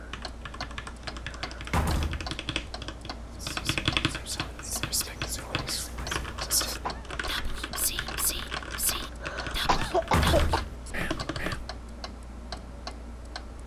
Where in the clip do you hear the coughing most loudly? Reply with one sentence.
The volume of the coughing peaks at 10 seconds.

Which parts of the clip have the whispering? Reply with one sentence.
The whispering can be heard from 3.4 to 11.8 s.